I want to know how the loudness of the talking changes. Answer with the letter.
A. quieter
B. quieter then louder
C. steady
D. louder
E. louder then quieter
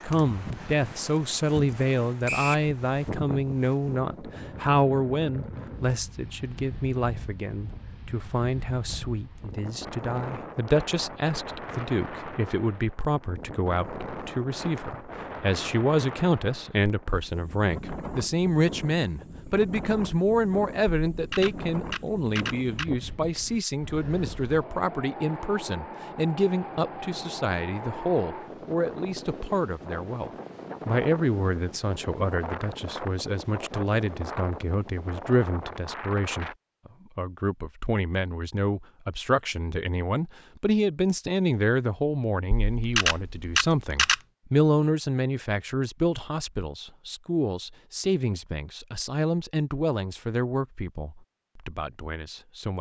C.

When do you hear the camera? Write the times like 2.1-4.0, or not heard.
21.1-22.9, 42.5-44.1.